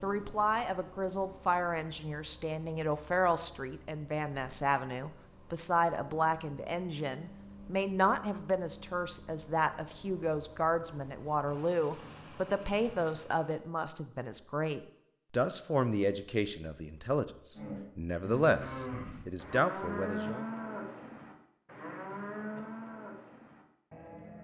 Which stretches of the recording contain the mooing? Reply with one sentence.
The mooing can be heard from 17.6 to 24.4 s.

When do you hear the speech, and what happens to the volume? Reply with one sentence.
You can hear the speech from 0.0 to 20.4 s, at a steady volume.